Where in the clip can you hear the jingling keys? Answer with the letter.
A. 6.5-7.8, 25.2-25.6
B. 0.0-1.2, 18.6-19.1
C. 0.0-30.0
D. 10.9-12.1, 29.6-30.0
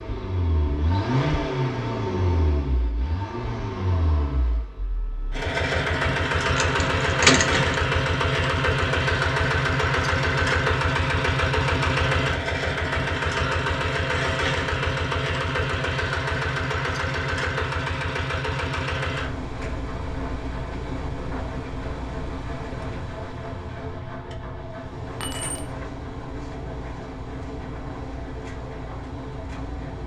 A.